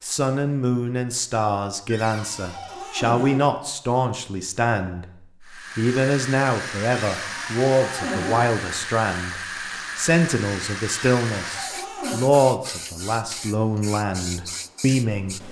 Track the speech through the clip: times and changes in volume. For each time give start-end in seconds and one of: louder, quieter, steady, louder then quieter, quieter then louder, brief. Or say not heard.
0.0-15.4 steady.